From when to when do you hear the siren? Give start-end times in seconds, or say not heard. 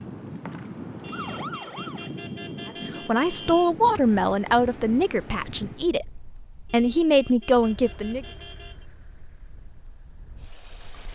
0.0-2.1.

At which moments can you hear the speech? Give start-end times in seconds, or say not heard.
2.9-8.2.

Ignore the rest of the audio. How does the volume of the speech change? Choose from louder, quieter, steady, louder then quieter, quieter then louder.
quieter then louder.